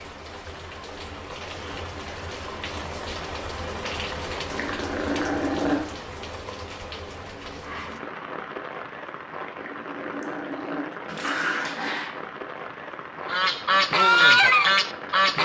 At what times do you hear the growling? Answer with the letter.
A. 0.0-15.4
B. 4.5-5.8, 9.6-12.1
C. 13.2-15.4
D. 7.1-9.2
B.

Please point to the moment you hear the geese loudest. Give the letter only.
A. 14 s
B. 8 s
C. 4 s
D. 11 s
A.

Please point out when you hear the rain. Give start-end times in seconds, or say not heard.
0.0-15.4.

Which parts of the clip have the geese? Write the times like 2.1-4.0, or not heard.
13.2-15.4.